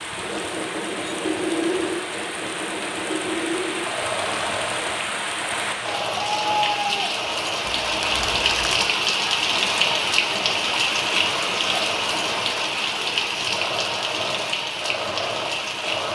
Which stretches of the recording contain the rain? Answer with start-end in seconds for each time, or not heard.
0.0-16.1.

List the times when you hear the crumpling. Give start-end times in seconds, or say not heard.
7.8-8.9.